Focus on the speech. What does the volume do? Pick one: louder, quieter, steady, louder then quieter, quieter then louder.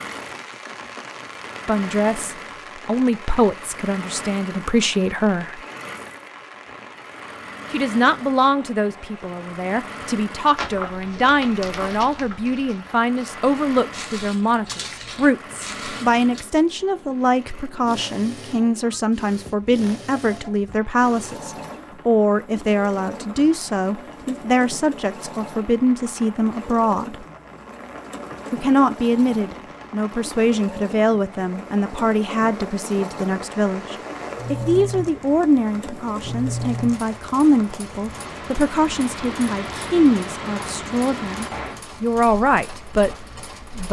steady.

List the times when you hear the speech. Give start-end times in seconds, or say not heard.
1.6-5.6, 7.7-27.2, 28.5-43.1.